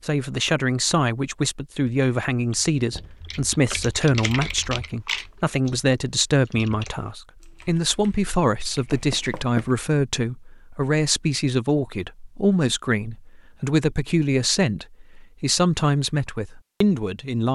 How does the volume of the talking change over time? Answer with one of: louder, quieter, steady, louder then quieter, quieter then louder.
steady.